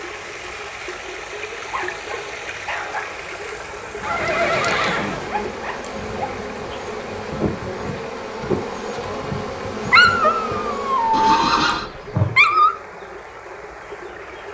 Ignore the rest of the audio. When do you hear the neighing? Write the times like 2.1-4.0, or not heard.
4.0-5.3, 11.1-11.9.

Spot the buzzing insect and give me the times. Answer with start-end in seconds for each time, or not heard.
3.8-12.6.